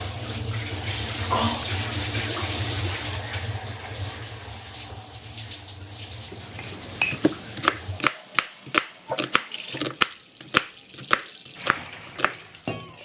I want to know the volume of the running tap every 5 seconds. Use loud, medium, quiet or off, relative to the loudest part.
loud, medium, medium.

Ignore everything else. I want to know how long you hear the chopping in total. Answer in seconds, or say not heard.
6 s.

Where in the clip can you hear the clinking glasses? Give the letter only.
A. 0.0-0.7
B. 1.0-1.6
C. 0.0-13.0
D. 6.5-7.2
D.